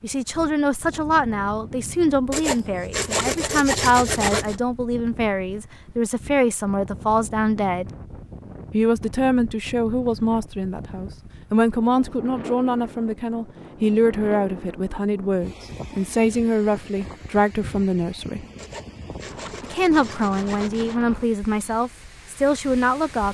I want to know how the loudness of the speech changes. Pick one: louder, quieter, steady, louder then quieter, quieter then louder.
steady.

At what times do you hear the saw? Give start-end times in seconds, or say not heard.
2.3-4.5, 18.6-20.9.